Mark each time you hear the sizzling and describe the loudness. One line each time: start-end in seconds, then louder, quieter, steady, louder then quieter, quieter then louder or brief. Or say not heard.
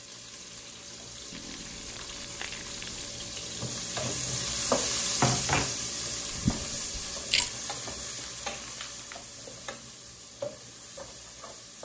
0.0-11.8 louder then quieter.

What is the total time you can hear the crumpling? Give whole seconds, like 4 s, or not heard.
3 s.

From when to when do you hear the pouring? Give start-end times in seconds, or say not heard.
6.3-7.5.